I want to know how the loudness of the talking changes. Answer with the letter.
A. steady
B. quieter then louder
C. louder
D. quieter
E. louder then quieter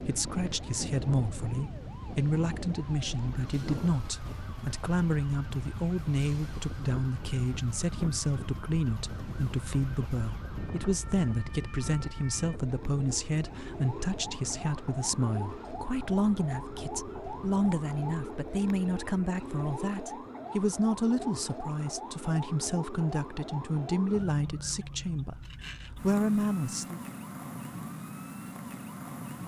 A.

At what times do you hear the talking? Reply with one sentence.
You can hear the talking from 0.0 to 27.0 s.